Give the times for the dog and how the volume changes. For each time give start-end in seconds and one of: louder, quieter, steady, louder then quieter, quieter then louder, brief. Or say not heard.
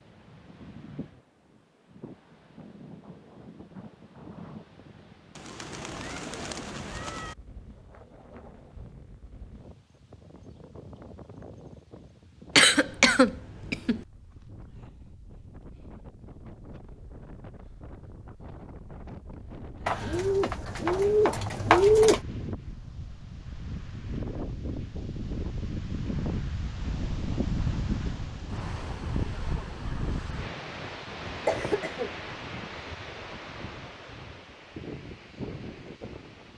not heard.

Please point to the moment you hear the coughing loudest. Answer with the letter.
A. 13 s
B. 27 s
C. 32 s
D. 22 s
A.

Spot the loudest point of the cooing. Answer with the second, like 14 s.
22 s.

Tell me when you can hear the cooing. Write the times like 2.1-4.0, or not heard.
5.3-7.3, 19.9-22.2.